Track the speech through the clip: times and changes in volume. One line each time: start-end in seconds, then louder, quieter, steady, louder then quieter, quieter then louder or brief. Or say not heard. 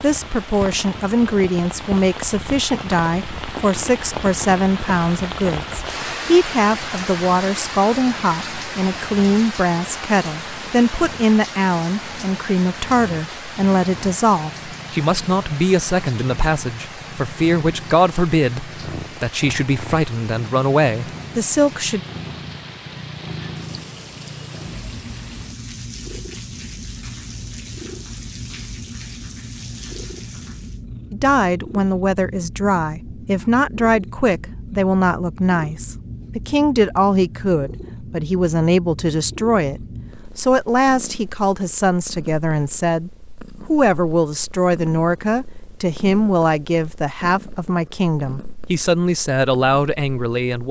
0.0-22.0 steady
31.1-50.6 steady.